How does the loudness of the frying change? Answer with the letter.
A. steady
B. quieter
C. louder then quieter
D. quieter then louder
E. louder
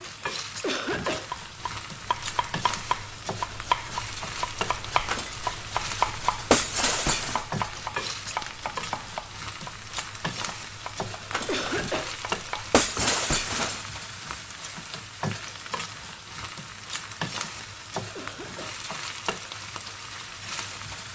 A.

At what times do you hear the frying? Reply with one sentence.
The frying can be heard from 0.0 to 21.1 s.